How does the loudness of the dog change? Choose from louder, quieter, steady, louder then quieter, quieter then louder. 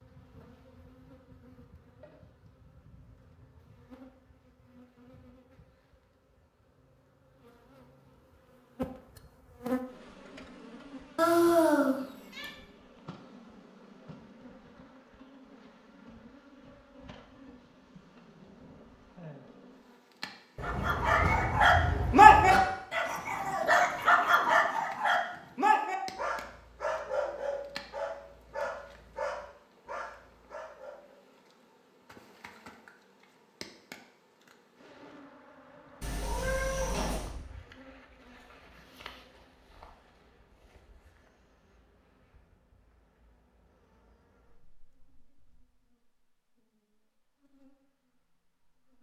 quieter.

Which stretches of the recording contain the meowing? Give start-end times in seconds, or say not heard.
11.2-12.5, 20.6-22.6, 36.0-37.4.